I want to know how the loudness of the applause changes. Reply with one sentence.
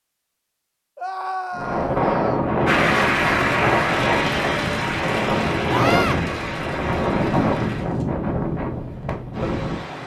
The volume of the applause goes down.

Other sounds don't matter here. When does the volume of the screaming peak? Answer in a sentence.
The volume of the screaming peaks at 6 seconds.